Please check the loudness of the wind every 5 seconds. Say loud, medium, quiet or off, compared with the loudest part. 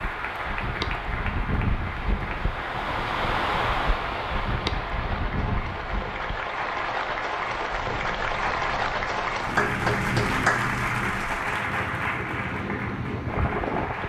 loud, medium, loud.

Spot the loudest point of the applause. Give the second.
10 s.